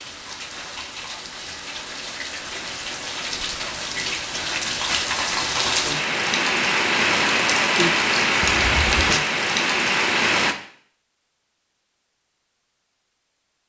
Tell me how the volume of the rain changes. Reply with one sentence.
The loudness of the rain goes up.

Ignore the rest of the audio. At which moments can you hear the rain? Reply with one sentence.
The rain can be heard from 0.0 to 10.6 s.